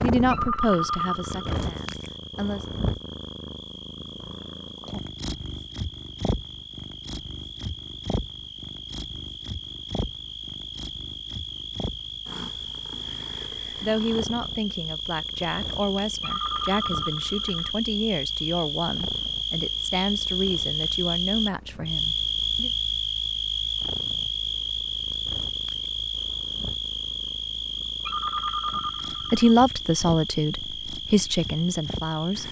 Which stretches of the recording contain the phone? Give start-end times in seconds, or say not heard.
0.3-1.6, 16.2-17.7, 28.1-29.6.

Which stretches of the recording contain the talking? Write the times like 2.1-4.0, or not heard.
0.0-2.6, 13.3-22.7, 29.3-32.4.